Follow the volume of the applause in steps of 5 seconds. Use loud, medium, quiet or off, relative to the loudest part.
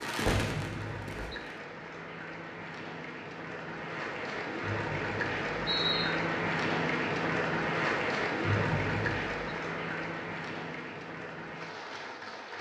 medium, loud, medium.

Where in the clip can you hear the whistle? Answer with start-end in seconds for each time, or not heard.
0.2-1.1, 4.6-6.1, 8.4-9.4.